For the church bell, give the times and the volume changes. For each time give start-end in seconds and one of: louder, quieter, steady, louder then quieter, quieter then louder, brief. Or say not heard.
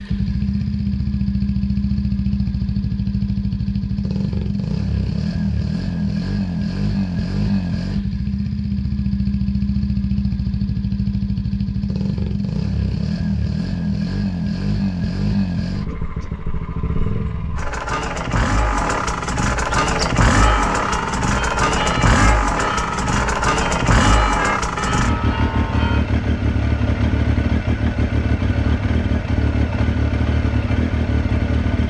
19.8-26.1 steady.